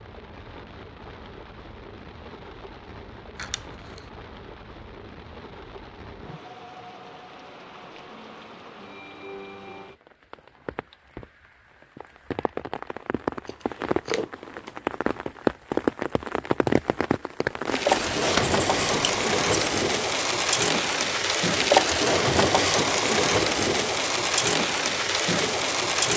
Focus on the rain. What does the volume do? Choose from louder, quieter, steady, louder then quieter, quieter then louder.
louder.